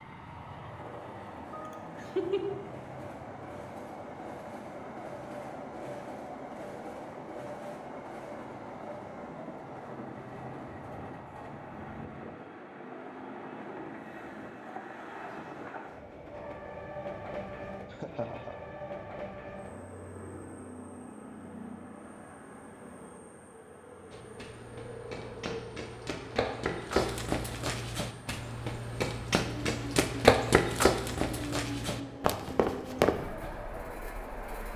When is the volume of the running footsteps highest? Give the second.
30 s.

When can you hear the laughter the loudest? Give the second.
2 s.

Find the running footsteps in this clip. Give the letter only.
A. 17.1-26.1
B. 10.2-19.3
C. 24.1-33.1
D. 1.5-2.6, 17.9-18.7
C.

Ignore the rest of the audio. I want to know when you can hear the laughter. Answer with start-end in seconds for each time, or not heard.
1.5-2.6, 17.9-18.7.